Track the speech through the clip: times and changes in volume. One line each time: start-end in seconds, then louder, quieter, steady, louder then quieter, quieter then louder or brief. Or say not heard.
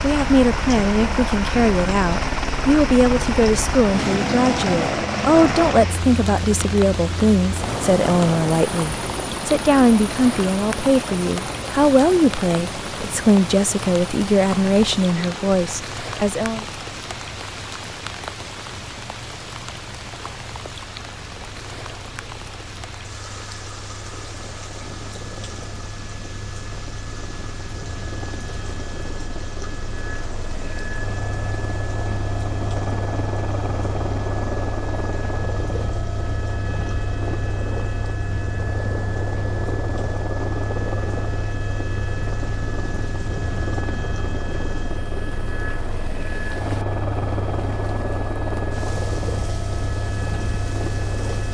0.0-16.6 steady.